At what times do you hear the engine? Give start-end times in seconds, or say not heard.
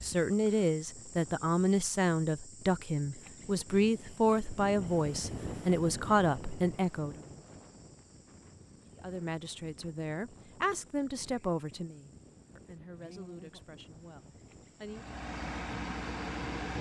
14.8-16.7.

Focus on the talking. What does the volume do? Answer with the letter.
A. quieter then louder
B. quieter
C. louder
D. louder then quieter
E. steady
B.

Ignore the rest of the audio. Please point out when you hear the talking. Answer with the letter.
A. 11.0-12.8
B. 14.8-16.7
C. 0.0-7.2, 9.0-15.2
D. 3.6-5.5
C.